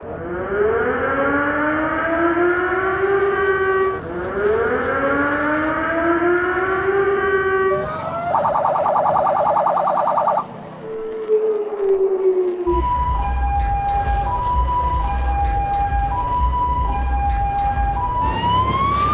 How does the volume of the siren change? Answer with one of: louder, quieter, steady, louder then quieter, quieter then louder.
steady.